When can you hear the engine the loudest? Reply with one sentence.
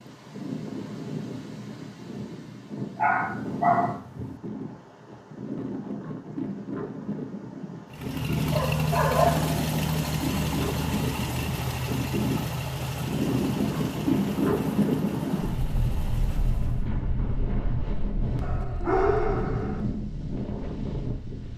The volume of the engine peaks at 9 seconds.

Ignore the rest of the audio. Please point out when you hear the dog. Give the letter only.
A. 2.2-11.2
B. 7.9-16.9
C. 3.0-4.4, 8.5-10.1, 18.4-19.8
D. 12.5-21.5
C.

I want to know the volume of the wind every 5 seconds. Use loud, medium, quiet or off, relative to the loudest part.
medium, medium, loud, loud, medium.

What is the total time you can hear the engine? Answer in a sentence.
The engine can be heard for 9 seconds in total.